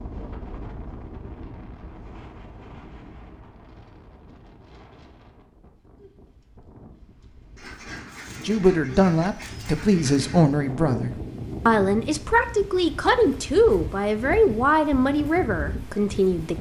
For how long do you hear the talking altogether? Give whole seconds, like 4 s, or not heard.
8 s.